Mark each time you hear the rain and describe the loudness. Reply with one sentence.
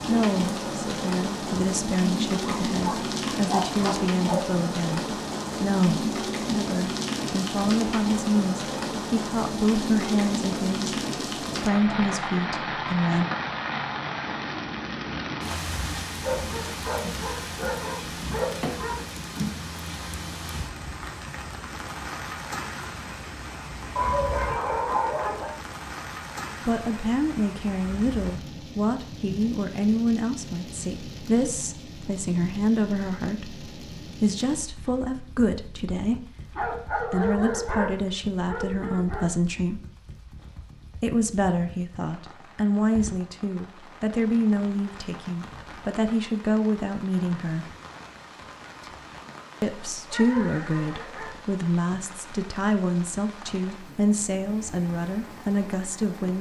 You can hear the rain from 0.0 to 56.3 s, getting quieter.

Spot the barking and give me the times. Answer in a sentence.
The barking can be heard from 2.4 to 4.5 s, from 16.1 to 18.9 s, from 23.9 to 25.6 s, from 36.5 to 39.3 s and from 49.9 to 51.4 s.